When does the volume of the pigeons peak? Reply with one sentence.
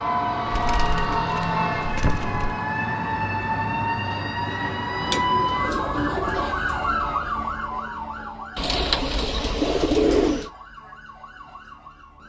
The loudest moment of the pigeons is at 10 seconds.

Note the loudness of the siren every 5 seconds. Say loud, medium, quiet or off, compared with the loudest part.
loud, loud, quiet.